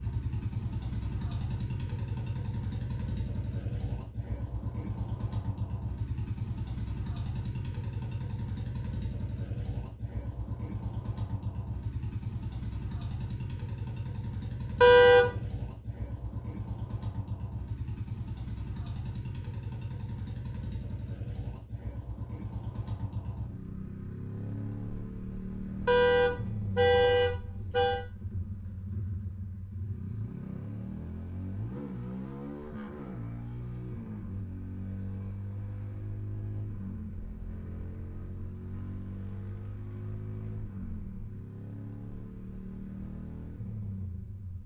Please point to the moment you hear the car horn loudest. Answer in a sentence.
The volume of the car horn peaks at 15 seconds.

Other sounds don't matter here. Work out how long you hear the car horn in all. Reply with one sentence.
You can hear the car horn for 3 seconds altogether.